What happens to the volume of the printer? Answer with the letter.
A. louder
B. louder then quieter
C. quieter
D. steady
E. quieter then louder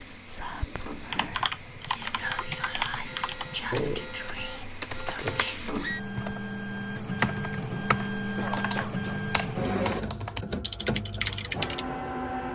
A.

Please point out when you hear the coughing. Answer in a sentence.
The coughing can be heard from 8.2 to 9.2 s.